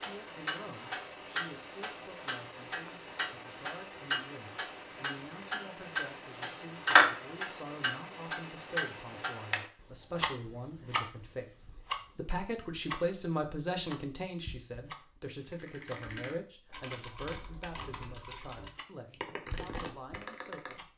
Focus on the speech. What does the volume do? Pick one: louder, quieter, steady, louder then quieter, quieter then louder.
louder then quieter.